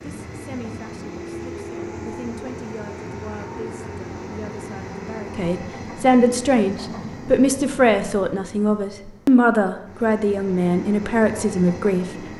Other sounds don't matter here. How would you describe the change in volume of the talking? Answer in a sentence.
The volume of the talking goes up.